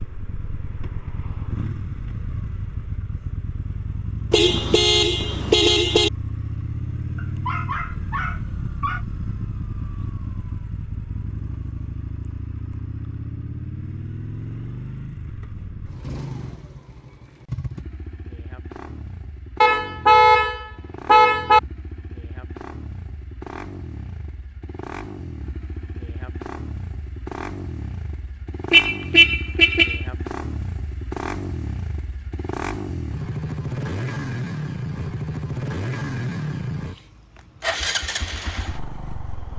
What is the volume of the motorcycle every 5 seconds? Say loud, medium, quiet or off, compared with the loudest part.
medium, loud, medium, medium, medium, medium, loud, loud.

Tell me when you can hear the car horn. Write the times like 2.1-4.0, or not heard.
4.3-6.1, 19.6-21.6, 28.7-30.1.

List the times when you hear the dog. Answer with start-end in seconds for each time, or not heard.
7.2-9.1.